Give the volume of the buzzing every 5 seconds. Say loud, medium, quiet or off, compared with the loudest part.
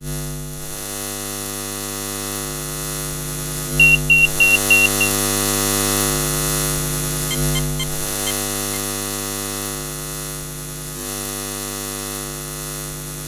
loud, loud, medium.